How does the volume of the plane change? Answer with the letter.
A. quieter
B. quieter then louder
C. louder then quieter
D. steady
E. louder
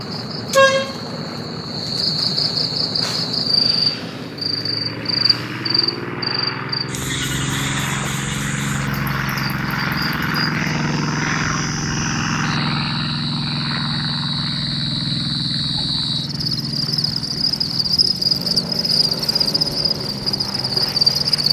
C.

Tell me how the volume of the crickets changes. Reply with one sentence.
The volume of the crickets goes down, then up.